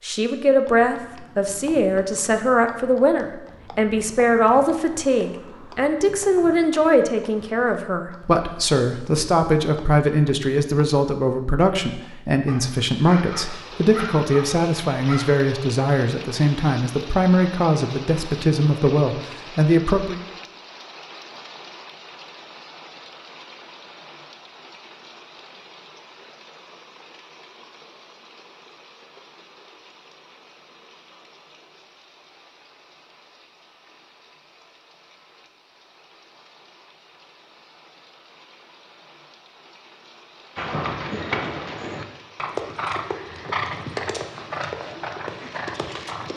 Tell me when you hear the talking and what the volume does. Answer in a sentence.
You can hear the talking from 0.0 to 20.2 s, at a steady volume.